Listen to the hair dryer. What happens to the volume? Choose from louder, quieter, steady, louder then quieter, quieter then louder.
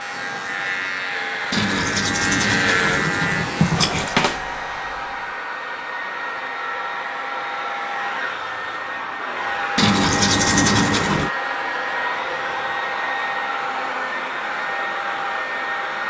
louder.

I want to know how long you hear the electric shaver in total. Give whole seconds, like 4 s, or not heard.
5 s.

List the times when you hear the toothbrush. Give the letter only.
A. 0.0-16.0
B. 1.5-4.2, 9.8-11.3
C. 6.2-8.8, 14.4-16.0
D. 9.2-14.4
B.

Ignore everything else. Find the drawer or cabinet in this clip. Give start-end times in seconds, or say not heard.
not heard.